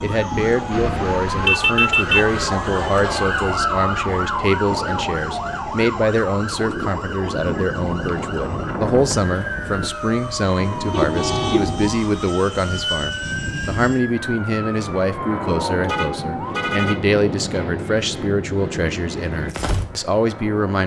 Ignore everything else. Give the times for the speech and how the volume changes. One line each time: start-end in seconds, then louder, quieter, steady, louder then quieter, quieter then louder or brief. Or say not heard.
0.0-20.8 steady.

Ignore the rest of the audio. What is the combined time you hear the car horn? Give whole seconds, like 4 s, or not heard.
4 s.